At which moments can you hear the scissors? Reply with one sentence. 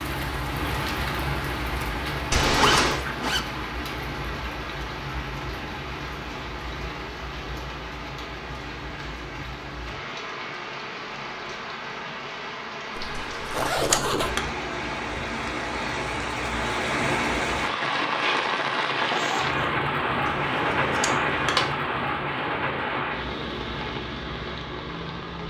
The scissors can be heard from 2.3 to 3.0 s, from 13.2 to 14.4 s and from 20.2 to 21.6 s.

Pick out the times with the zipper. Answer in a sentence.
The zipper can be heard from 2.5 to 3.5 s, from 12.9 to 14.4 s and from 19.0 to 19.7 s.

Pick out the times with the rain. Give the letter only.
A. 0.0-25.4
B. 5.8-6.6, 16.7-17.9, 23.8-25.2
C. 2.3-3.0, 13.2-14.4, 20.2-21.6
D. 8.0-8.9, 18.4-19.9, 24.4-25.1
A.